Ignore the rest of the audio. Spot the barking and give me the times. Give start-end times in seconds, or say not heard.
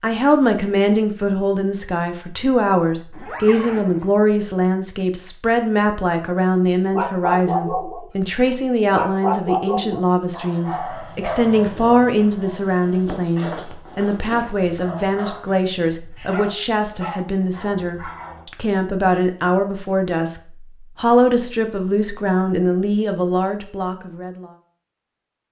6.9-18.4.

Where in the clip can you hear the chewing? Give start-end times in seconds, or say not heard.
not heard.